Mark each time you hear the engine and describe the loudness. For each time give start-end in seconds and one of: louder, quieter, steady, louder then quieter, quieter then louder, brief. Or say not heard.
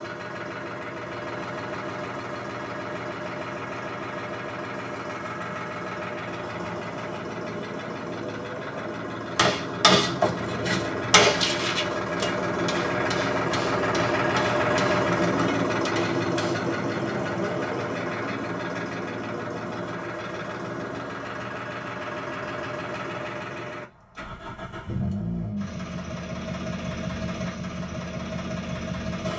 0.0-29.3 louder then quieter.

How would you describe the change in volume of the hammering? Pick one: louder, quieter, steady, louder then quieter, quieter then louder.
quieter.